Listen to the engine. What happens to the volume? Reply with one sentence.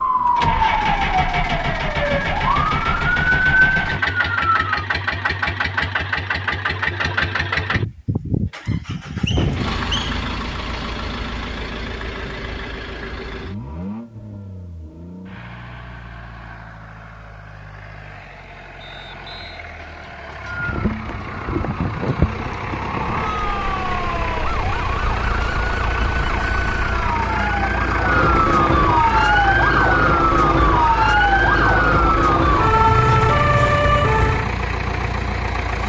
The loudness of the engine goes down, then up.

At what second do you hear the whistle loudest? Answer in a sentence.
The loudest moment of the whistle is at 10 seconds.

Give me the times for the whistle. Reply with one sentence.
You can hear the whistle from 8.8 to 10.2 s and from 18.8 to 19.6 s.